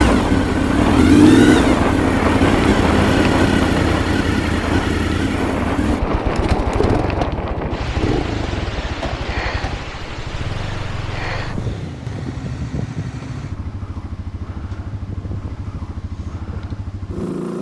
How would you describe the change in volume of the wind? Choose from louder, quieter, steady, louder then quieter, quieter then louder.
quieter.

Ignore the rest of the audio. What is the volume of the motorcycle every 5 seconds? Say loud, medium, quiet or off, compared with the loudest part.
loud, medium, quiet, quiet.